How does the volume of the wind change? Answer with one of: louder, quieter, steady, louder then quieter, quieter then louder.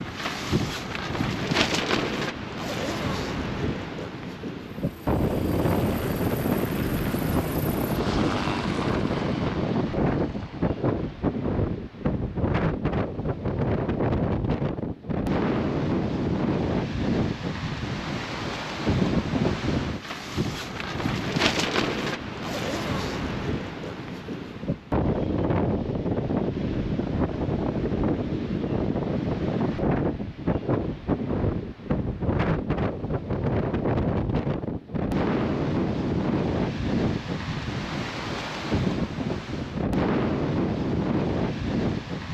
steady.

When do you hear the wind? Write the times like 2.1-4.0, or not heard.
0.0-42.2.